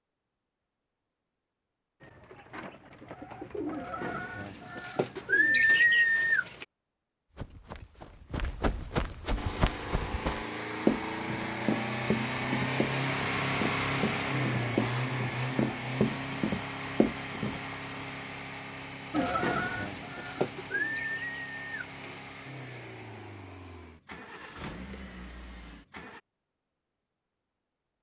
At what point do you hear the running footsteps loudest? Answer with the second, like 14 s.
11 s.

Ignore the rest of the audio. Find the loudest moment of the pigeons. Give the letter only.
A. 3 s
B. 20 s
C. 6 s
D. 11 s
C.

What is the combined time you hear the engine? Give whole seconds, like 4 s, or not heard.
17 s.